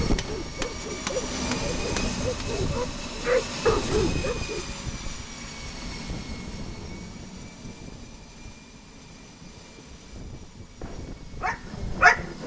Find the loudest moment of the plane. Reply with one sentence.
The volume of the plane peaks at 2 seconds.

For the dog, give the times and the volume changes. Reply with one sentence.
You can hear the dog from 0.0 to 4.8 s, getting louder; and briefly from 10.8 to 12.4 s.